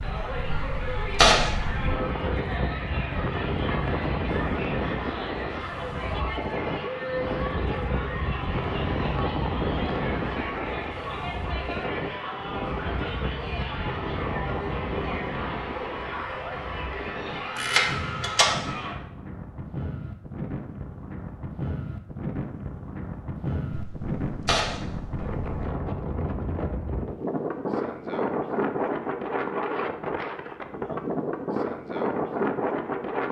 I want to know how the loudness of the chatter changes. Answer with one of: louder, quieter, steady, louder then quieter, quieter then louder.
steady.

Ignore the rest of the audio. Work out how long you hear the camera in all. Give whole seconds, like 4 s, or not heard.
4 s.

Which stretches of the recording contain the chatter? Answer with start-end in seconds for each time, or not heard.
0.0-18.9.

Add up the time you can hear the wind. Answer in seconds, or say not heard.
33 s.